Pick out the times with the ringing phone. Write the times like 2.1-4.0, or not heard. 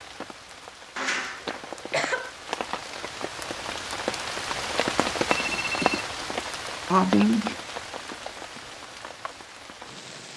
5.3-6.0.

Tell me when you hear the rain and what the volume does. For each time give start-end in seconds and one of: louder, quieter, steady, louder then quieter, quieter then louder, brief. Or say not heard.
0.0-10.3 louder then quieter.